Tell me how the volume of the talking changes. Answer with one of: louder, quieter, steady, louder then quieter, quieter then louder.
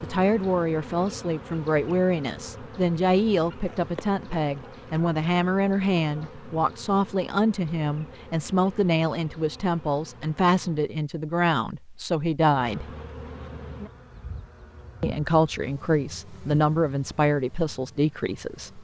steady.